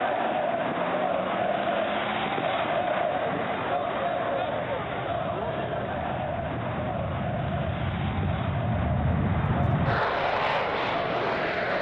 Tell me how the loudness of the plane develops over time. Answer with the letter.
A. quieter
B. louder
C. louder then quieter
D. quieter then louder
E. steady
B.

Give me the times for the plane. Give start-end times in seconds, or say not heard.
0.0-11.7.